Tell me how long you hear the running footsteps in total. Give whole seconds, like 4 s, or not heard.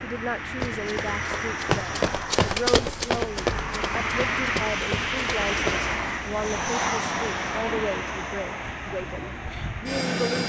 5 s.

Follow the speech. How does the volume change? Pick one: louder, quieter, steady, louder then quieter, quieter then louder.
steady.